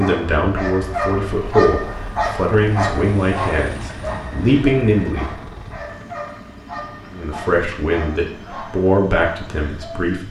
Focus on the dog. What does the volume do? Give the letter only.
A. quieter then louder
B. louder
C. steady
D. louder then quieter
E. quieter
E.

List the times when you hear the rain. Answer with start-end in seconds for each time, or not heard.
not heard.